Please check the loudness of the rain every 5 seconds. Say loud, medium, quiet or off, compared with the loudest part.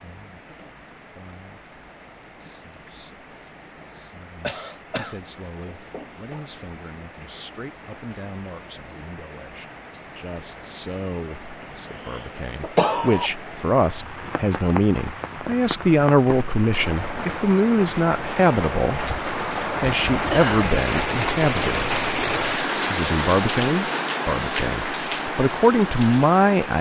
quiet, quiet, quiet, medium, loud, medium.